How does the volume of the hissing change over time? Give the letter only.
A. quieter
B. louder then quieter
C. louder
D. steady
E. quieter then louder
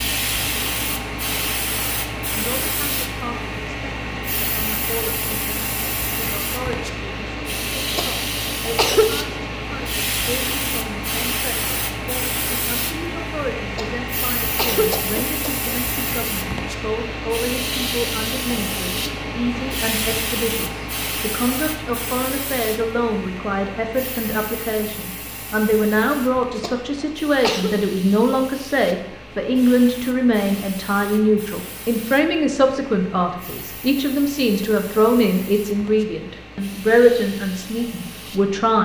A.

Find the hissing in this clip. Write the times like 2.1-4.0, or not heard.
0.0-38.8.